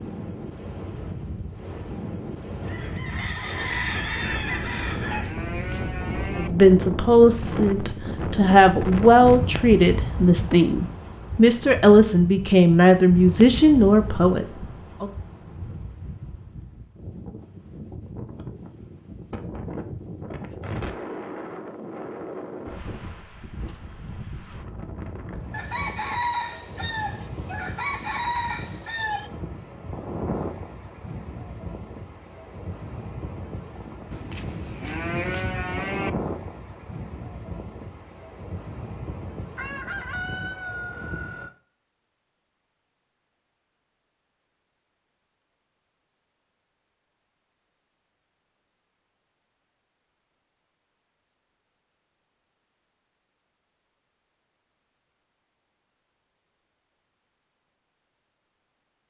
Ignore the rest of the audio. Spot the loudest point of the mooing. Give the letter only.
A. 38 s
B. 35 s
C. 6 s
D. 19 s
B.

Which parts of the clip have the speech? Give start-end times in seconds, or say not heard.
6.3-15.1.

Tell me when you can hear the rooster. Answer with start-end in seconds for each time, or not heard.
2.6-5.3, 25.5-29.3, 39.5-41.5.